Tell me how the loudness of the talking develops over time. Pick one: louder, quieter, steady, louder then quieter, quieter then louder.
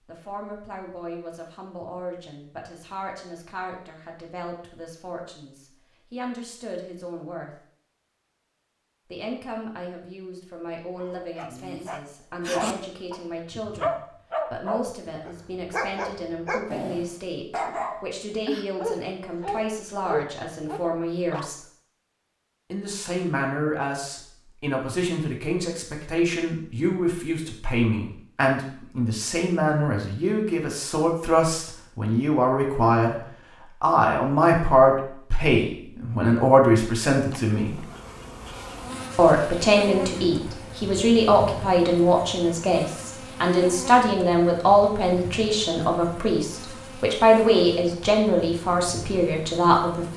louder.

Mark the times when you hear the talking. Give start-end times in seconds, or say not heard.
0.1-7.5, 9.1-21.6, 22.7-33.1, 33.8-37.8, 39.1-50.1.